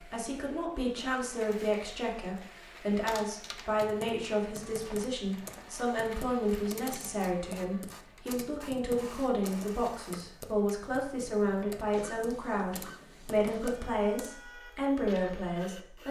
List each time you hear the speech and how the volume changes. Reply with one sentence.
The speech can be heard from 0.0 to 16.0 s, at a steady volume.